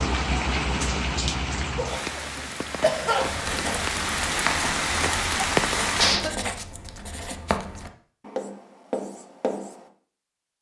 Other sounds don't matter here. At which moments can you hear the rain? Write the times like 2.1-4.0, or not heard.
0.0-6.2.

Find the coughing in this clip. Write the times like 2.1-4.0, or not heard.
1.8-3.6, 6.0-6.5.